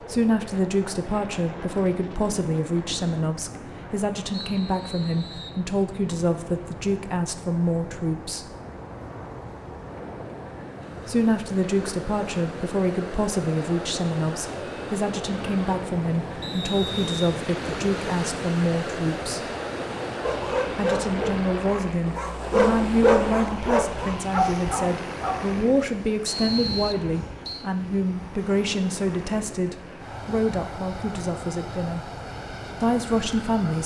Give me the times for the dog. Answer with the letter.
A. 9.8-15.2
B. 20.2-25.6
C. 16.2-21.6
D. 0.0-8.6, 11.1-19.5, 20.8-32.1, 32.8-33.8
B.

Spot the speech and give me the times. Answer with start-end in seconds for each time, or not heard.
0.0-8.6, 11.1-19.5, 20.8-32.1, 32.8-33.8.